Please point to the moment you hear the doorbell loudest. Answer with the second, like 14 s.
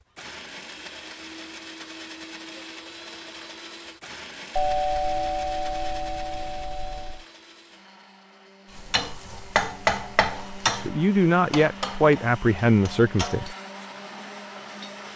5 s.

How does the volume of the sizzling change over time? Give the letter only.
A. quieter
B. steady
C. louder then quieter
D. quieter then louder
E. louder
A.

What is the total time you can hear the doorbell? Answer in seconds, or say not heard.
3 s.